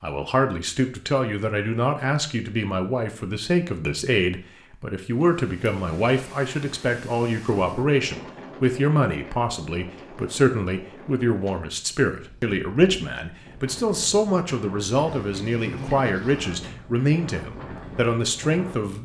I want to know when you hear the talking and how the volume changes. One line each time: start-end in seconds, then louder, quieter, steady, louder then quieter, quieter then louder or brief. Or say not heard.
0.0-19.0 steady.